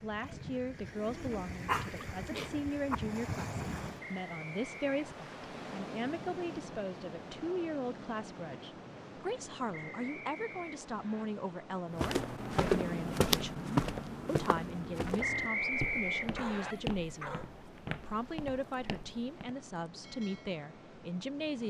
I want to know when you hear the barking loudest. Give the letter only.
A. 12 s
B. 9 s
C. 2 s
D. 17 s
C.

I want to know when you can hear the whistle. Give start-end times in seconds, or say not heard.
4.0-4.9, 9.7-11.2, 15.2-16.8.